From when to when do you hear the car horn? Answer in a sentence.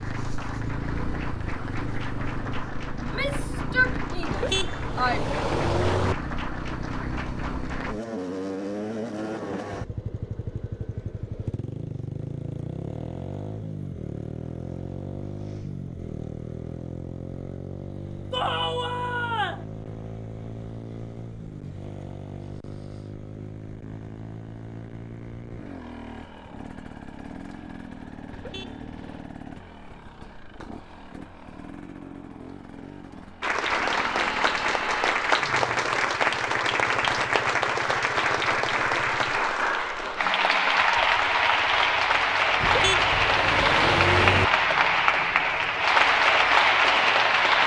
The car horn can be heard from 4.2 to 6.2 s, from 28.3 to 29.2 s and from 42.6 to 44.5 s.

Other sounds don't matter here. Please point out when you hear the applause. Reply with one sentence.
The applause can be heard from 0.0 to 8.0 s and from 33.4 to 47.6 s.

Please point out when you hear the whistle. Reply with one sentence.
You can't hear the whistle here.